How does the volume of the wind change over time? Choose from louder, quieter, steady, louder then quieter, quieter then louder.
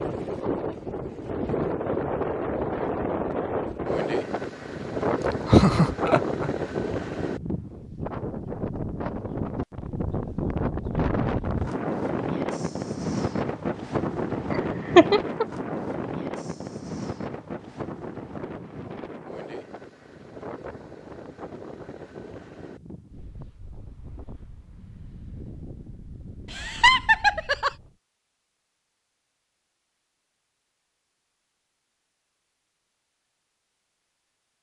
quieter.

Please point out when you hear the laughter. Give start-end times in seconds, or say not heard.
5.5-6.5, 14.5-15.4, 26.5-27.7.